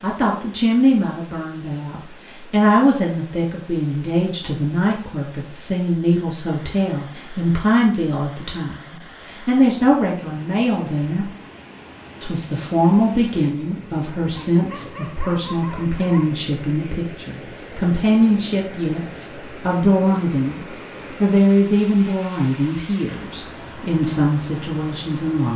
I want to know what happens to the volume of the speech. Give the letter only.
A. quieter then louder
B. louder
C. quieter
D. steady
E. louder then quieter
D.